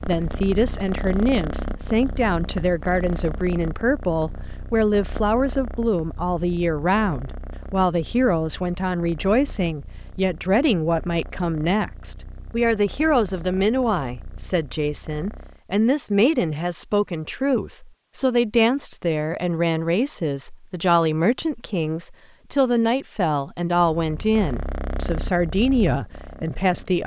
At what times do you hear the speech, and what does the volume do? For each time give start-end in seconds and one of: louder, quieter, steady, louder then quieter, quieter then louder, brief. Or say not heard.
0.1-27.0 steady.